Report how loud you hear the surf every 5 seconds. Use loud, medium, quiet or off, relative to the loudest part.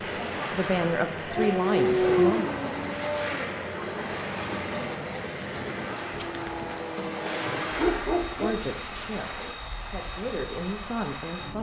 loud, loud, off.